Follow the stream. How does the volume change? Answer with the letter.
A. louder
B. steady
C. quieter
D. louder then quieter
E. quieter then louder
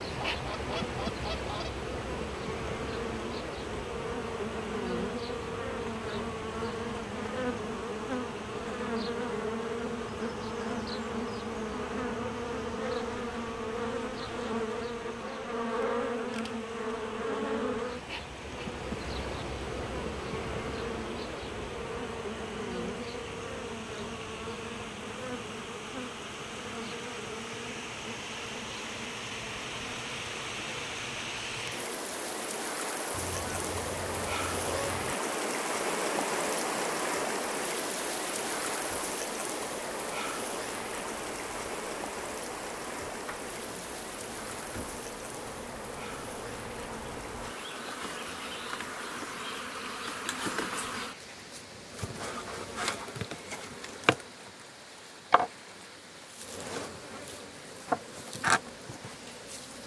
D.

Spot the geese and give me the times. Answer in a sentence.
The geese can be heard from 0.1 to 1.8 s and from 33.1 to 35.1 s.